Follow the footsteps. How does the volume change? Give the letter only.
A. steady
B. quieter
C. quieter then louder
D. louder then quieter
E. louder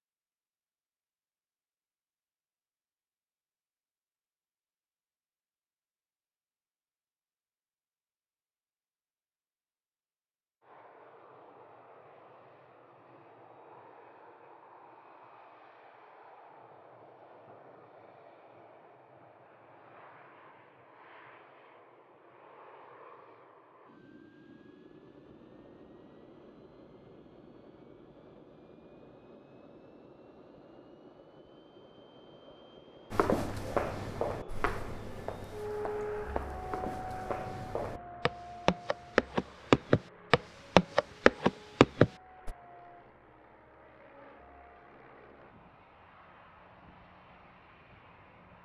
C.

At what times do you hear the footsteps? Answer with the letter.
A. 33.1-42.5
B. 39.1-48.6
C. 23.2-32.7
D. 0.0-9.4
A.